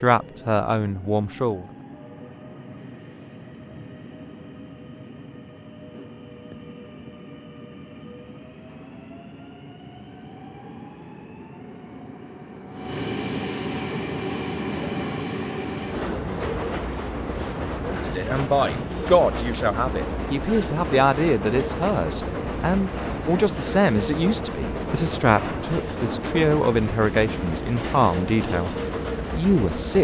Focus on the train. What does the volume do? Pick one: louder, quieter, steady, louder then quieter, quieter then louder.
louder.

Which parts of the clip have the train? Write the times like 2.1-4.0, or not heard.
0.0-29.9.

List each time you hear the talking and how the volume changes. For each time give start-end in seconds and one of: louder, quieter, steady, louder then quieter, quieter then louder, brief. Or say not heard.
0.0-1.6 brief
17.9-29.9 steady.